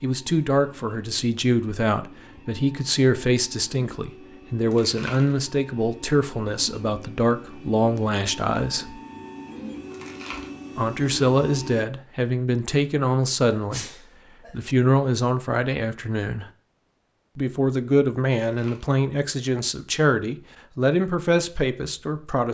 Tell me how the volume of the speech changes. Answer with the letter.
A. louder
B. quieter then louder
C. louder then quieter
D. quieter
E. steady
E.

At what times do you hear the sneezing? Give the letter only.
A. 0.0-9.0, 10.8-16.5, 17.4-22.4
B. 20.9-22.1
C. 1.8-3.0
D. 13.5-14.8
D.